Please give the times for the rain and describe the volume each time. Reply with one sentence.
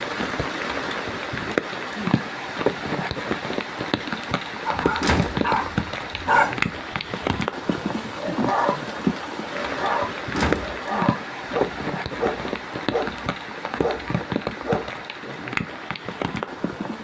You can hear the rain from 0.0 to 16.9 s, at a steady volume.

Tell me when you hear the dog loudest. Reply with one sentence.
The volume of the dog peaks at 6 seconds.